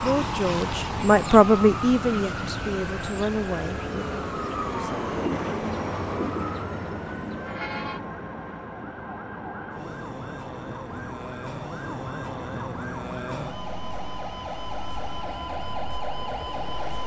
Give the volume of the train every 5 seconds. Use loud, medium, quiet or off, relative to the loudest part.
loud, loud, medium, medium.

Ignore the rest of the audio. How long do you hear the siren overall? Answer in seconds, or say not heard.
17 s.